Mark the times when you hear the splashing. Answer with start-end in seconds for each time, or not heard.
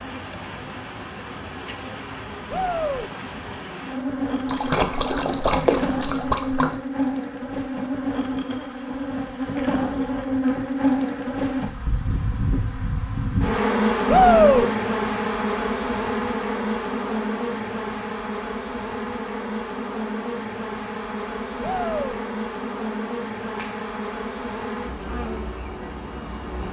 4.5-6.8, 23.4-23.9.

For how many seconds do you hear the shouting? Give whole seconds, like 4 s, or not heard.
2 s.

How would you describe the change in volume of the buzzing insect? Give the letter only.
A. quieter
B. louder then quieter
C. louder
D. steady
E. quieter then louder
B.